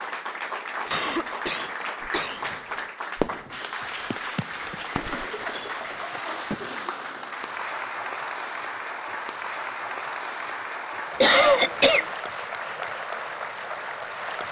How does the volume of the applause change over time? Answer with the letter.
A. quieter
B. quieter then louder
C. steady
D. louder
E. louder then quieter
C.